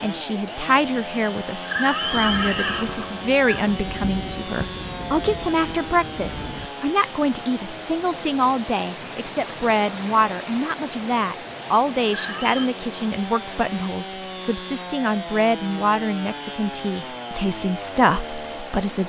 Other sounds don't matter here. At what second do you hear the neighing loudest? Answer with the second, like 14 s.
2 s.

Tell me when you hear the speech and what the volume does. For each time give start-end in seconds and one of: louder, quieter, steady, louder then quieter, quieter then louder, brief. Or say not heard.
0.0-19.0 steady.